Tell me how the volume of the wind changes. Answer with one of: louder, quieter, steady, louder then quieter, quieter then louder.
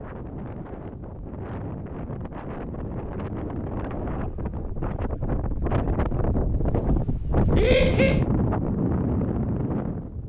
louder.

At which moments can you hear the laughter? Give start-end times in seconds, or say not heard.
7.5-8.2.